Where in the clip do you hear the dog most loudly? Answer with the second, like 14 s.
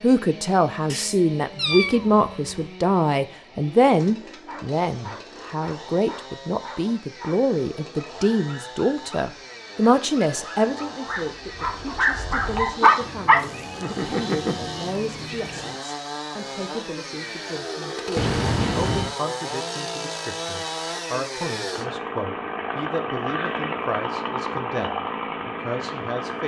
13 s.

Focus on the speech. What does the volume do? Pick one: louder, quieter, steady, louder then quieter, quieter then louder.
quieter.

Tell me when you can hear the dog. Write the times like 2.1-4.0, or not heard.
4.5-14.6.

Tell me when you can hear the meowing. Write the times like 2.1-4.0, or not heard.
0.9-2.7, 13.0-15.8, 18.1-19.1.